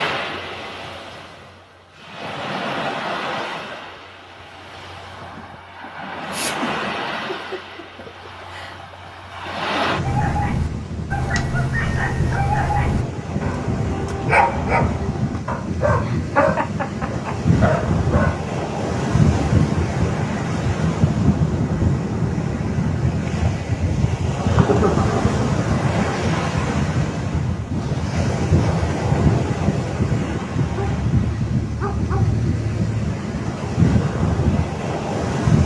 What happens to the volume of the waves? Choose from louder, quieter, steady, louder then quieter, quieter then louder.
louder.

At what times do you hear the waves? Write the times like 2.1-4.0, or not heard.
0.0-35.6.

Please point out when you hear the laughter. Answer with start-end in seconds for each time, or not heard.
6.2-8.8, 16.1-17.4, 24.4-25.2.